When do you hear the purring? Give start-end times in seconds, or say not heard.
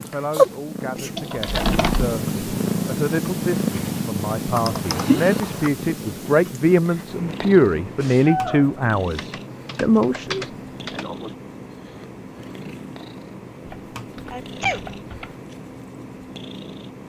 0.0-17.0.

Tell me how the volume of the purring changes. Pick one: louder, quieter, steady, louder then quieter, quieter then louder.
quieter.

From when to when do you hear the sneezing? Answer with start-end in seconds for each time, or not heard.
0.3-1.2, 8.0-9.2, 14.3-14.8.